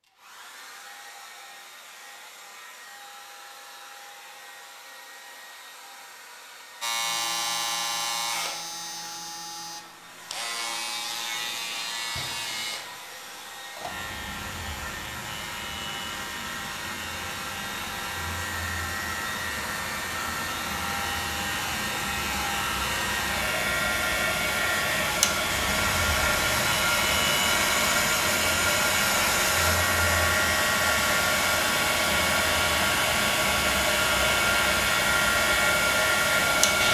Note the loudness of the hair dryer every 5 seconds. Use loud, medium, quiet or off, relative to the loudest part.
quiet, quiet, quiet, quiet, medium, loud, loud, loud.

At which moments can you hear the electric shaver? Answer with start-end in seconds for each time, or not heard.
6.8-36.8.